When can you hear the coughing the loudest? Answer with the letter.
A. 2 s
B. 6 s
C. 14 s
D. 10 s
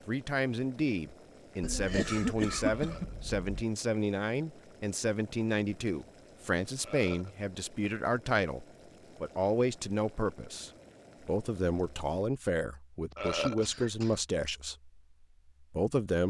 A.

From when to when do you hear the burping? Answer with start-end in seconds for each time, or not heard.
2.6-3.1, 6.8-7.3, 13.2-13.7.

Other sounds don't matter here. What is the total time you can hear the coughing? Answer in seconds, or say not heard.
3 s.